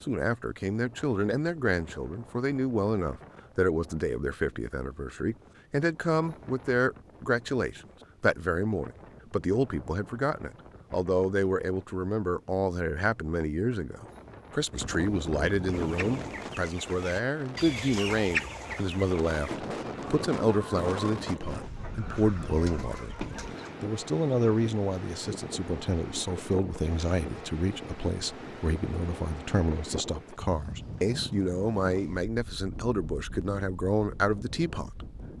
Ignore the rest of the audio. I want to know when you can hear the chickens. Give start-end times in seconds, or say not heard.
15.7-23.8.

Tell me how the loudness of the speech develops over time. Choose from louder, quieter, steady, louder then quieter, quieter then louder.
steady.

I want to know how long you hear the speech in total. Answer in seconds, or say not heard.
35 s.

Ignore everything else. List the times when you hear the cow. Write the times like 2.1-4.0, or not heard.
not heard.